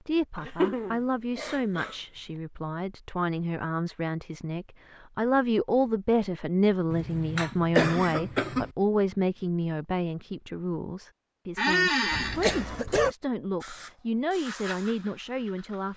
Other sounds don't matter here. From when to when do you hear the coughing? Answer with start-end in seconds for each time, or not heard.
0.3-1.9, 6.9-8.7, 12.1-13.2.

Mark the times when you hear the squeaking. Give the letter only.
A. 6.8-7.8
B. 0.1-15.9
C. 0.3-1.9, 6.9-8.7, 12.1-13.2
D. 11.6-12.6
D.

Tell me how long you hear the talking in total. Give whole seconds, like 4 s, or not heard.
16 s.